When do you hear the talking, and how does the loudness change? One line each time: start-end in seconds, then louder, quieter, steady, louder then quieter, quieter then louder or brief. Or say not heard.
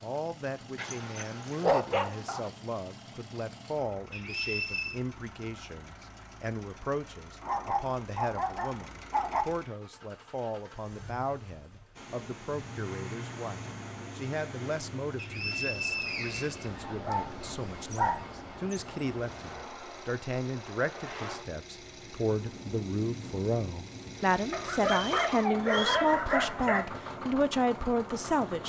0.0-28.6 louder.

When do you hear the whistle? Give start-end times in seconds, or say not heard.
4.1-5.0, 15.2-17.1, 24.8-26.1.